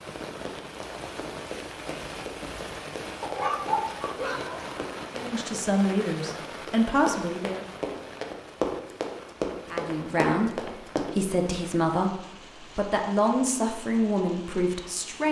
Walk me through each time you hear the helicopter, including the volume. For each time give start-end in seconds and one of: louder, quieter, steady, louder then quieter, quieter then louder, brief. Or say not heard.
not heard.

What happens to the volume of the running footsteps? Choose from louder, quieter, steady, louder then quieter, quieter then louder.
louder.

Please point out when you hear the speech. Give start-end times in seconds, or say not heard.
5.2-7.7, 9.7-15.2.